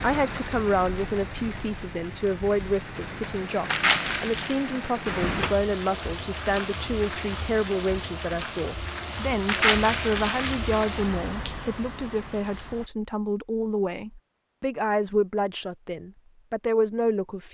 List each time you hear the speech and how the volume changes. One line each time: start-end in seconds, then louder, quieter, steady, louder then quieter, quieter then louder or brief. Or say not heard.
0.0-17.4 steady.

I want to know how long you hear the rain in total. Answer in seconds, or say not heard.
13 s.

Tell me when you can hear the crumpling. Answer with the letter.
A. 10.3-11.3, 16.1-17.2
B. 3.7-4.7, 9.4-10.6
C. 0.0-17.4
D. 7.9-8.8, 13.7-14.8
B.